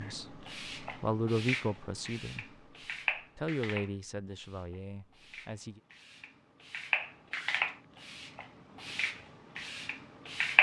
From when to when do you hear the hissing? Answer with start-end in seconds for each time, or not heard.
0.0-10.5.